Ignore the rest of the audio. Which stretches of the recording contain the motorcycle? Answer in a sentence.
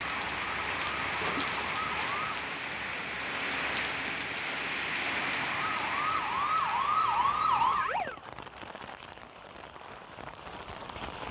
You can't hear the motorcycle here.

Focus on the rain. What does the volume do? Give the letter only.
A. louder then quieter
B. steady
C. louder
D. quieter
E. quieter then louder
D.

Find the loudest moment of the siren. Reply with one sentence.
The loudest moment of the siren is at 7 seconds.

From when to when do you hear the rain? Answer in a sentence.
You can hear the rain from 0.0 to 11.2 s.